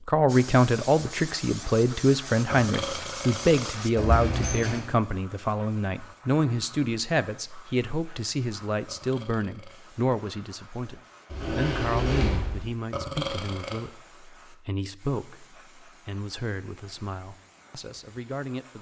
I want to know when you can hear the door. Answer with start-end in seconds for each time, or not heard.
4.0-4.8, 11.3-12.7.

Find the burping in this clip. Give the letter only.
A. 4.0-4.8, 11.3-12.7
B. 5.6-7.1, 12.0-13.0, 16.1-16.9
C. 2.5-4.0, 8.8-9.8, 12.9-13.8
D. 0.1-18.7
C.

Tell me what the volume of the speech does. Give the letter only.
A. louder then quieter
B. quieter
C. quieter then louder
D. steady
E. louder
B.